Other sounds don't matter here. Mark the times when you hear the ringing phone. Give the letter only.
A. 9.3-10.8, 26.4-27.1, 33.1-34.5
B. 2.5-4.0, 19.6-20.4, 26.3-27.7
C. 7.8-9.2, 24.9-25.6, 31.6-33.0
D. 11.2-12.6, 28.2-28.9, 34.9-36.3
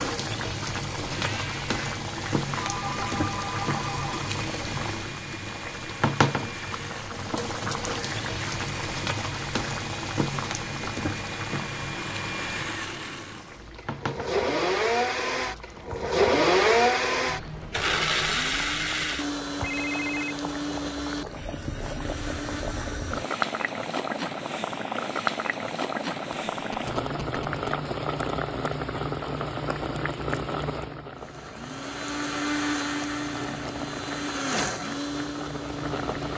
B.